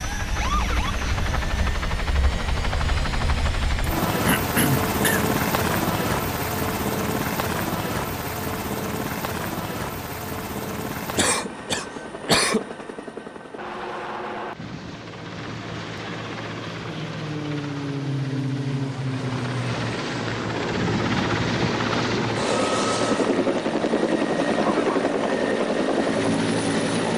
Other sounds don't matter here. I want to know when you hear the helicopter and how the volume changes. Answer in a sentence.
The helicopter can be heard from 0.0 to 27.1 s, getting quieter then louder.